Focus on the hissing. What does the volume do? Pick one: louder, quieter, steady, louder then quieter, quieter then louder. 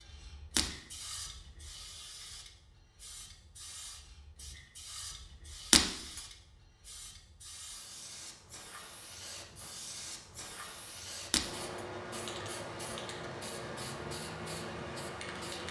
louder.